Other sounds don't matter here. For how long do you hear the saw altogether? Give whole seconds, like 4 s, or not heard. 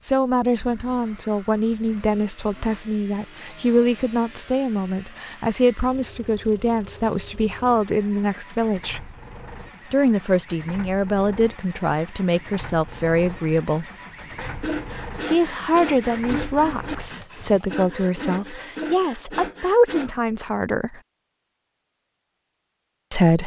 6 s.